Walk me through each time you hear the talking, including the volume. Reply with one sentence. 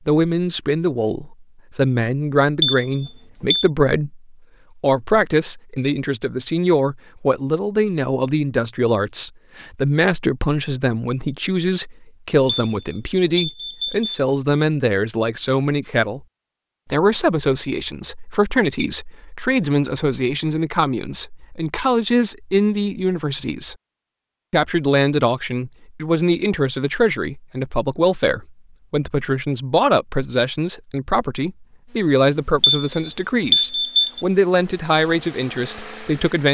The talking can be heard from 0.1 to 16.2 s, at a steady volume; from 16.9 to 23.8 s, at a steady volume; and from 24.5 to 36.4 s, at a steady volume.